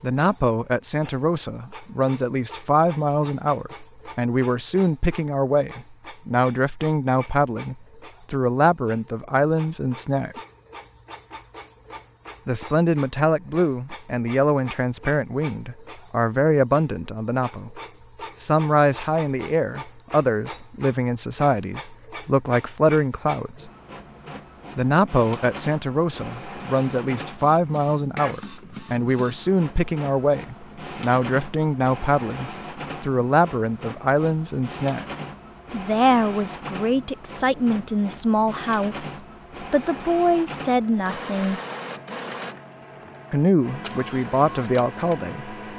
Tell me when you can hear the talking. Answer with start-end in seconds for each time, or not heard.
0.0-10.4, 12.4-17.8, 18.4-23.7, 24.8-35.0, 35.7-41.6, 43.3-45.5.